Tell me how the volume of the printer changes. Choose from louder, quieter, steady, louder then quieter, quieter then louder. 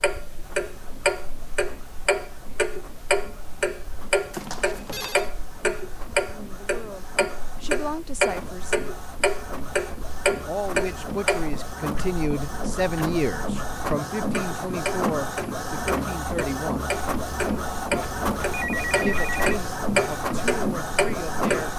louder.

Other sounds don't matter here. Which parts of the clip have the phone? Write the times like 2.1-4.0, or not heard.
4.3-5.2, 17.9-19.6.